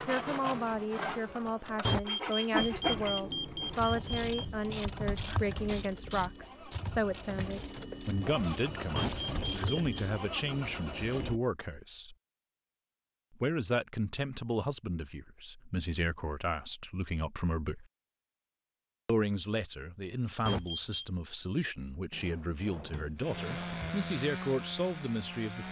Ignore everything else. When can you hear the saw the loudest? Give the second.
3 s.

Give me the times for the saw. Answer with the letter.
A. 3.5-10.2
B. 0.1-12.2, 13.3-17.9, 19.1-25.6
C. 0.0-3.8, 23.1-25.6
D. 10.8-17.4
C.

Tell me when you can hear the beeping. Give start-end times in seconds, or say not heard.
1.9-4.5, 8.9-10.0, 20.4-21.1.